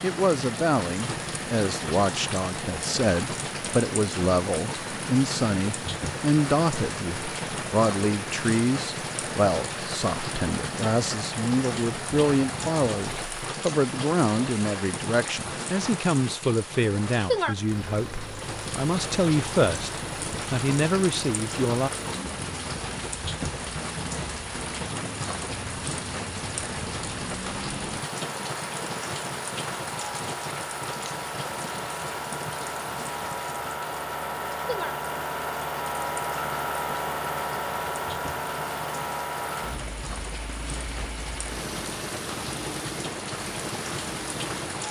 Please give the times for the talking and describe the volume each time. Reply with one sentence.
The talking can be heard from 0.0 to 21.9 s, at a steady volume.